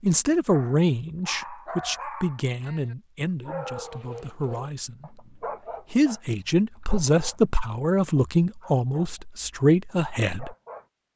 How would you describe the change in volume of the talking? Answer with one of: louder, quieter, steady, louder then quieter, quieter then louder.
quieter then louder.